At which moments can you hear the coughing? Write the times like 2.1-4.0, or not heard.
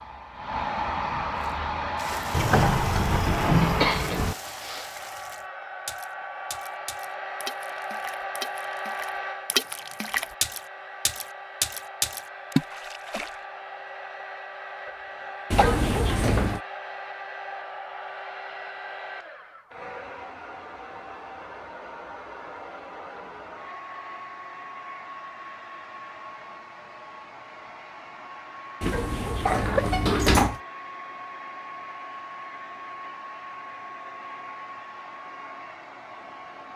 3.6-4.9, 14.8-15.8, 28.9-30.0.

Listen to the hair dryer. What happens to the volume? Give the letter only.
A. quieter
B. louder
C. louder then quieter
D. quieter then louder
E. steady
A.